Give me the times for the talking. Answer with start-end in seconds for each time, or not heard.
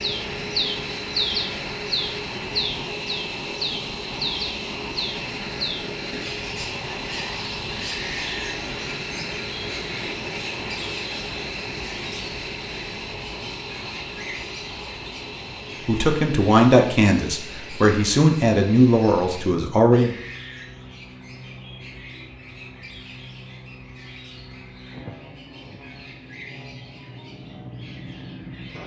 15.8-20.1.